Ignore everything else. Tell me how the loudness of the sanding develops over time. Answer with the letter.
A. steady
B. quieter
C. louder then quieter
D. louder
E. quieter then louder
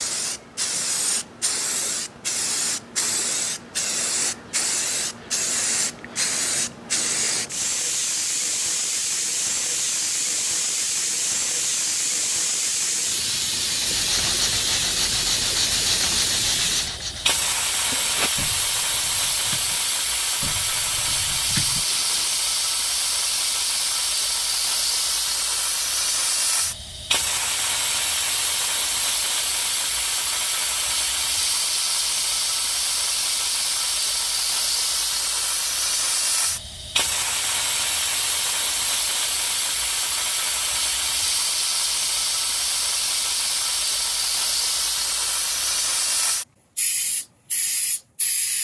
E.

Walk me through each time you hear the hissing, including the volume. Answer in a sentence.
You can hear the hissing from 0.0 to 48.5 s, at a steady volume.